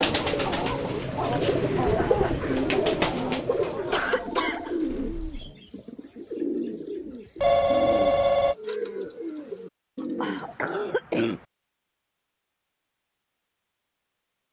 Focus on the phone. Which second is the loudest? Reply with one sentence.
The loudest moment of the phone is at 8 seconds.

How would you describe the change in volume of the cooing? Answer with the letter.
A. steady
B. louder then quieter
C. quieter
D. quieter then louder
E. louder
C.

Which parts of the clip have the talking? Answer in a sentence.
You can't hear the talking here.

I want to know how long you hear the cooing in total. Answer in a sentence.
You can hear the cooing for 11 seconds altogether.